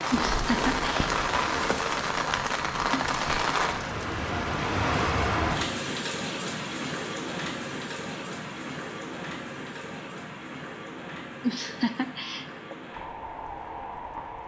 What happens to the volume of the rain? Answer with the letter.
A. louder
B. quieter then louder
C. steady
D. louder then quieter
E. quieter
E.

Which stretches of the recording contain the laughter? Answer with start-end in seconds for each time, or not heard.
0.1-1.1, 11.4-12.8.